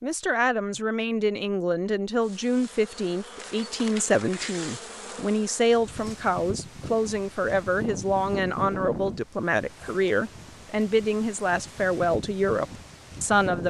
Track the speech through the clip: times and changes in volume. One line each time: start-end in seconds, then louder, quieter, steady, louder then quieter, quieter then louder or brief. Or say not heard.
0.0-13.6 steady.